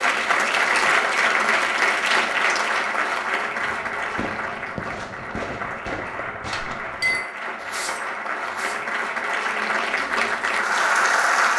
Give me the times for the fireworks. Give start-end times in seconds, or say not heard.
3.5-8.8.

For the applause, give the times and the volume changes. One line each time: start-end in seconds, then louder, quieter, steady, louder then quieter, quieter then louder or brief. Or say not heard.
0.0-11.5 quieter then louder.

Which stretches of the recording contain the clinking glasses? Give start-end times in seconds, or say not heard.
6.5-8.2.